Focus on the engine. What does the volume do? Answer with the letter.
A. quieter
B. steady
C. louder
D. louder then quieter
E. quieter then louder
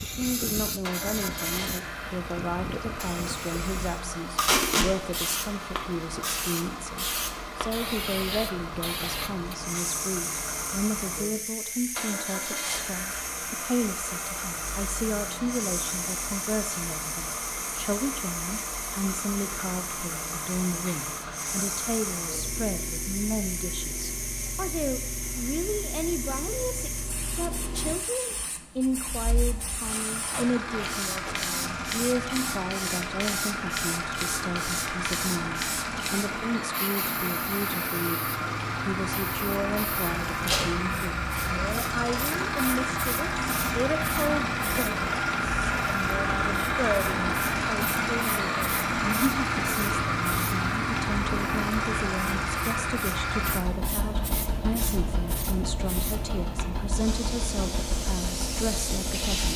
C.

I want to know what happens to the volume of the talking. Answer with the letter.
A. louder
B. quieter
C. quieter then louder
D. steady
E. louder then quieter
D.